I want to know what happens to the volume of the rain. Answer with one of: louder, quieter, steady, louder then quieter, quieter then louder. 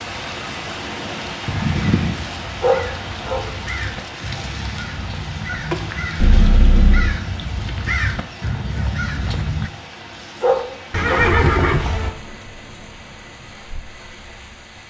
quieter.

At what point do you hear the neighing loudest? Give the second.
11 s.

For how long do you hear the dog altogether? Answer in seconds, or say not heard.
2 s.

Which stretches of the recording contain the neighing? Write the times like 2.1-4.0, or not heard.
1.4-2.1, 6.2-7.2, 10.9-12.2.